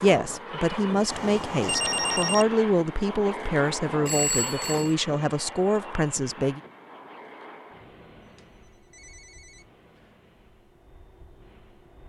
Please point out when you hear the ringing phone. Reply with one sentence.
The ringing phone can be heard from 1.1 to 2.5 s, from 4.0 to 5.0 s and from 8.2 to 10.1 s.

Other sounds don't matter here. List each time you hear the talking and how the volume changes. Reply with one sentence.
The talking can be heard from 0.0 to 6.6 s, at a steady volume.